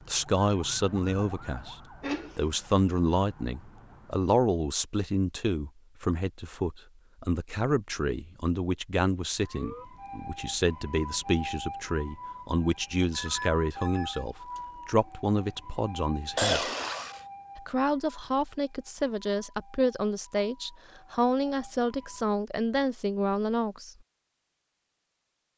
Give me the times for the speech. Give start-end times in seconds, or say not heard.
0.1-1.8, 2.4-16.7, 17.6-23.9.